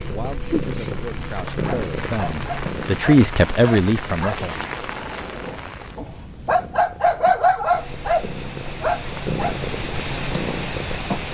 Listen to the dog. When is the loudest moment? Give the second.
7 s.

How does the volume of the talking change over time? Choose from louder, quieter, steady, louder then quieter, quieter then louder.
louder.